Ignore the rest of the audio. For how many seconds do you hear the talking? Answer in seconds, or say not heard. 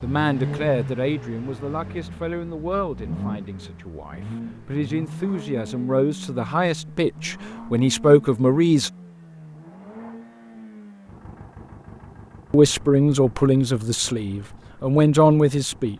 12 s.